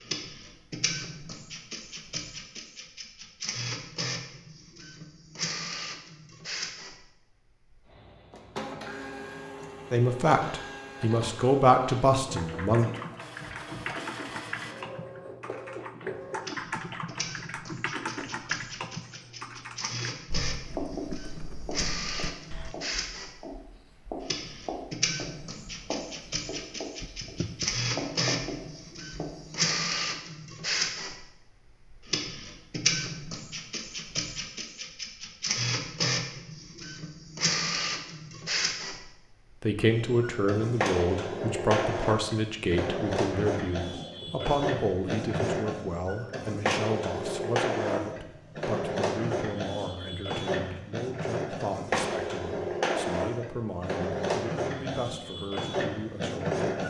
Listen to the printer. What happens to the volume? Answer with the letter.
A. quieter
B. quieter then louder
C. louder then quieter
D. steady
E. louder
E.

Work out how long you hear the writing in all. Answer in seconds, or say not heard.
9 s.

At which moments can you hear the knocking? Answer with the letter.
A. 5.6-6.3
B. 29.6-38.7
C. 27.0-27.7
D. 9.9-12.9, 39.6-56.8
C.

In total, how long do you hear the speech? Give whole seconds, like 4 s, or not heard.
20 s.